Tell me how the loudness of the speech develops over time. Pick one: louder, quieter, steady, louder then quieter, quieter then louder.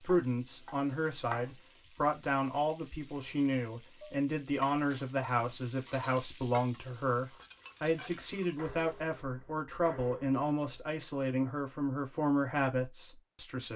steady.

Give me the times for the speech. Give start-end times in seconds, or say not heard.
0.0-13.7.